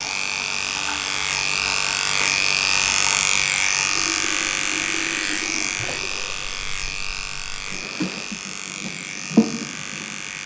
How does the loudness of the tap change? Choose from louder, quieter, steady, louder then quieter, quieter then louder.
louder.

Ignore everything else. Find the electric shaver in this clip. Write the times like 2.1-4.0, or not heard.
0.0-10.4.